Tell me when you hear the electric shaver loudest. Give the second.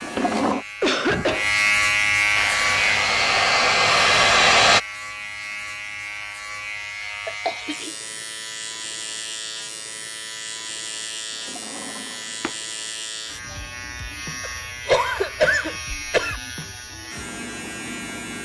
2 s.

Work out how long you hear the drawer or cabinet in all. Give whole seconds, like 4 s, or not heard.
2 s.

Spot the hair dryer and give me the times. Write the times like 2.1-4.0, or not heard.
2.4-4.8.